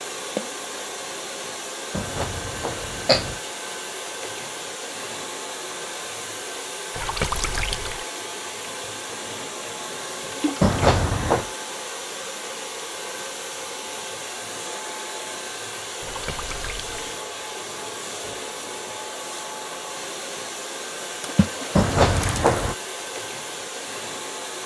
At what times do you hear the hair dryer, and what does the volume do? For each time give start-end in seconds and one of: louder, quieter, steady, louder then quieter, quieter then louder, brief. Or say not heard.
0.0-24.6 steady.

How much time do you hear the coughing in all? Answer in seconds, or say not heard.
3 s.